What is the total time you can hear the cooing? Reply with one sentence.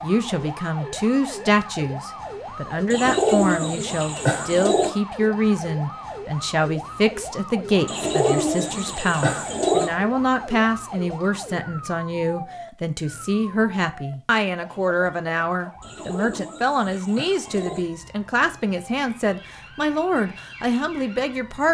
The cooing can be heard for 6 seconds in total.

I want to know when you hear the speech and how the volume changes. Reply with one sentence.
The speech can be heard from 0.0 to 21.6 s, at a steady volume.